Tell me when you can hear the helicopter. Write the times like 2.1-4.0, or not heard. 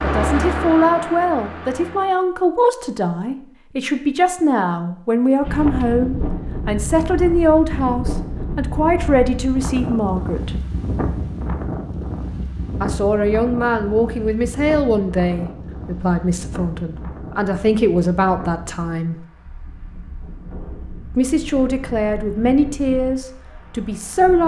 0.0-2.1.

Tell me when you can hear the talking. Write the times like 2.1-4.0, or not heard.
0.0-10.6, 12.8-19.2, 21.1-24.4.